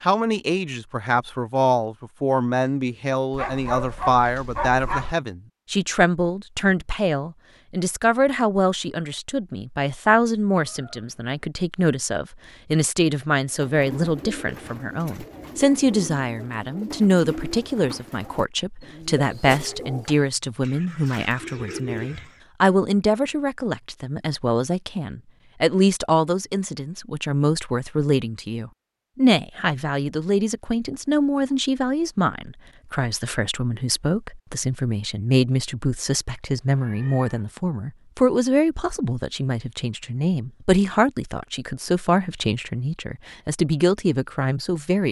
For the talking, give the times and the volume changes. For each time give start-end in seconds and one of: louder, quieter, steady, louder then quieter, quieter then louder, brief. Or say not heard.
0.0-45.0 steady.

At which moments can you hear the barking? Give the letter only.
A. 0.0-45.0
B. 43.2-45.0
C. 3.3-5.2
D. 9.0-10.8
C.